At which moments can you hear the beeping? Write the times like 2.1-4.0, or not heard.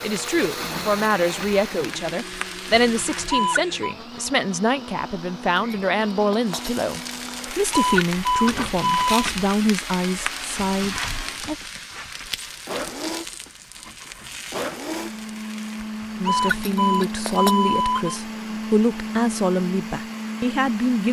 3.3-4.0, 7.7-9.2, 16.2-18.2.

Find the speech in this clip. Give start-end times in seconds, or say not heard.
0.0-11.6, 16.2-21.0.